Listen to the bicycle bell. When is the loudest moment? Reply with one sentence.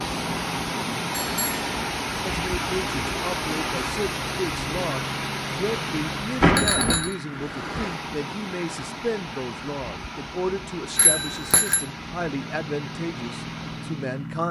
The loudest moment of the bicycle bell is at 7 seconds.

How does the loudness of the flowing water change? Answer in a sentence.
The loudness of the flowing water goes down.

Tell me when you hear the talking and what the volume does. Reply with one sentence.
You can hear the talking from 2.2 to 14.4 s, at a steady volume.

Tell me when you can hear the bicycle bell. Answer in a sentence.
You can hear the bicycle bell from 1.1 to 1.6 s, from 6.4 to 7.2 s and from 10.9 to 11.8 s.